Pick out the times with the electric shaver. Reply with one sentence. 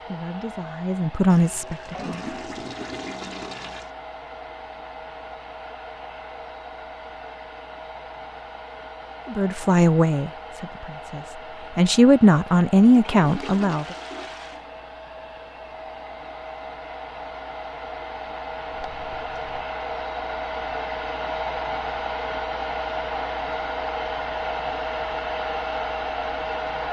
The electric shaver can't be heard in this clip.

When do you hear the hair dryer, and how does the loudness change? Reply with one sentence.
The hair dryer can be heard from 0.0 to 26.8 s, getting louder.